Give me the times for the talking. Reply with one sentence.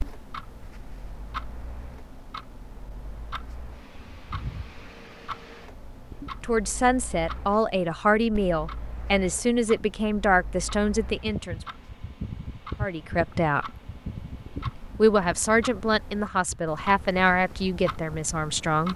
You can hear the talking from 6.4 to 11.6 s, from 12.8 to 13.7 s and from 14.9 to 18.9 s.